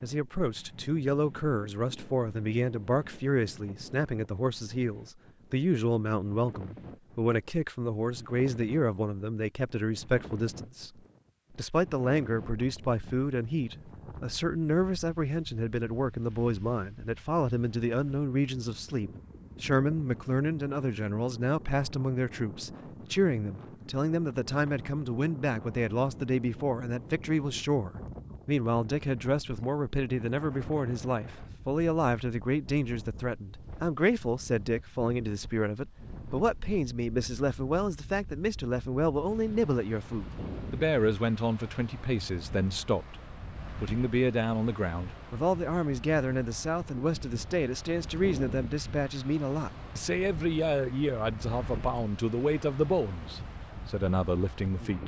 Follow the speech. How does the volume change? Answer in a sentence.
The loudness of the speech stays about the same.